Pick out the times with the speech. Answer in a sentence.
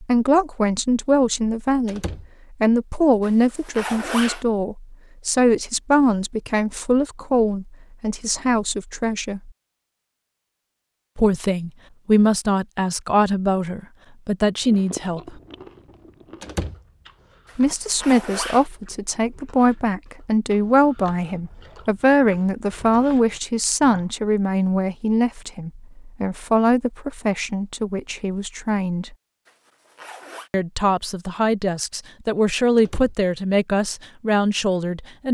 You can hear the speech from 0.0 to 9.5 s, from 11.2 to 15.3 s, from 17.6 to 29.1 s and from 30.5 to 35.2 s.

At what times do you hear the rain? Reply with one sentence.
The rain can't be heard in this clip.